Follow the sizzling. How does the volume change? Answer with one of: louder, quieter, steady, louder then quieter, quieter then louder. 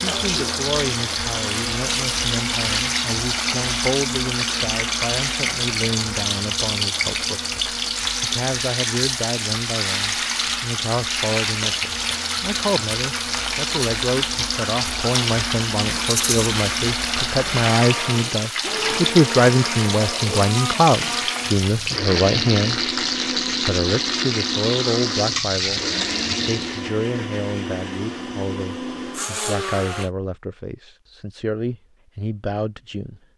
steady.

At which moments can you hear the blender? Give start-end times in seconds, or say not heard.
0.0-30.1.